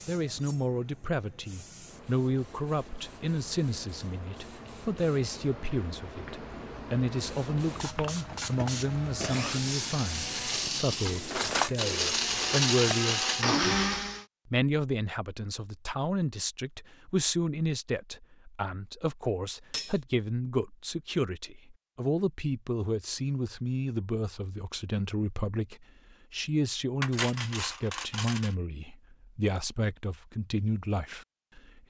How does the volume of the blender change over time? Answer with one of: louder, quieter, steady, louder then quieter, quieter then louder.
louder.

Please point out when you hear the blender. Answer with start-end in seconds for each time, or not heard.
8.2-14.2.